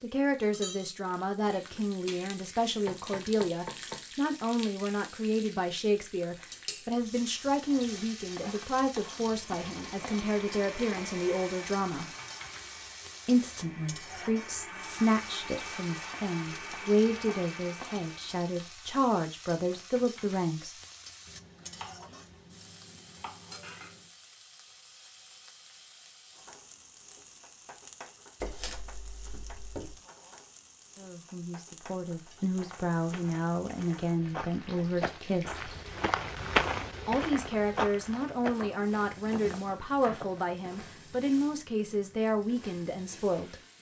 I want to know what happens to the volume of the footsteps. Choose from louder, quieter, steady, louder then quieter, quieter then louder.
louder then quieter.